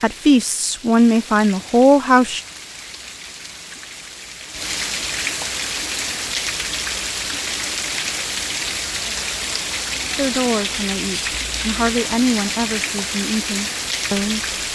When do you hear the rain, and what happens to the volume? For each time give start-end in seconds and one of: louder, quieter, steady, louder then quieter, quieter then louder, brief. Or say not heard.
0.0-14.7 louder.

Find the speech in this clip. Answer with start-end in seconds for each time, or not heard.
0.0-2.4, 10.2-14.4.